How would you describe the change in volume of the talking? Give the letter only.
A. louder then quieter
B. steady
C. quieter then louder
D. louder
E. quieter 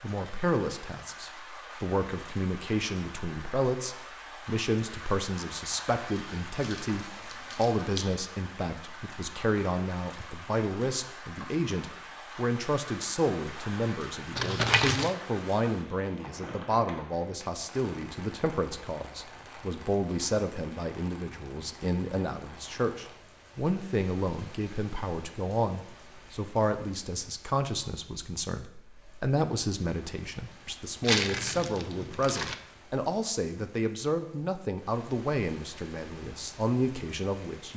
B.